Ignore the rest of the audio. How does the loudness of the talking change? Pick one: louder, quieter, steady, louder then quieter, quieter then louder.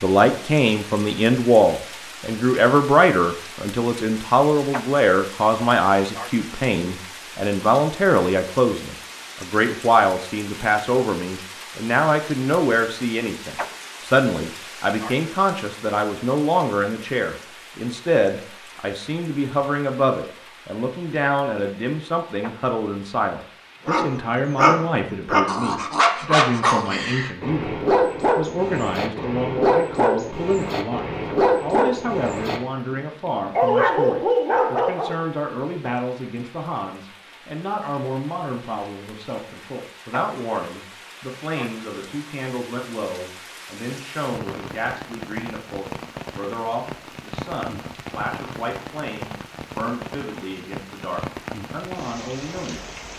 quieter.